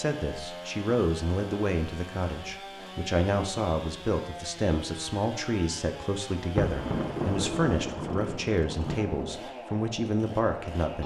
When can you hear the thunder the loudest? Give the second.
7 s.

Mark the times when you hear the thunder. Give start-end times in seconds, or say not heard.
6.5-9.3.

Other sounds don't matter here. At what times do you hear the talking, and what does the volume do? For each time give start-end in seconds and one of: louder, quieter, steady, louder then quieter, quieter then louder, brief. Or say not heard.
0.0-11.0 steady.